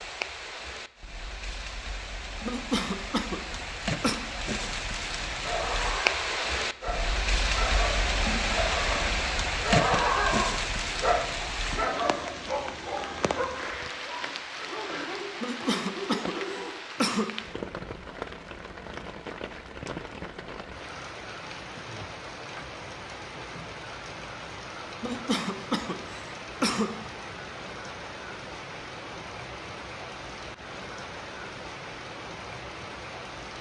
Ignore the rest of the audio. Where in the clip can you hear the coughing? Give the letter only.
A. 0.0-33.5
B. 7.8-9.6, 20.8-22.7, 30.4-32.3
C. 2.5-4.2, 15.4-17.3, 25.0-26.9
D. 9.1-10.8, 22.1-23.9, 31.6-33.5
C.